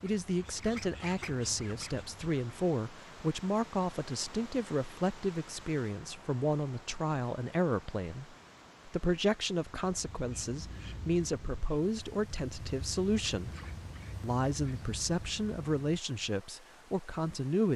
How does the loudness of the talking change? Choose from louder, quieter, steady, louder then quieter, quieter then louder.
steady.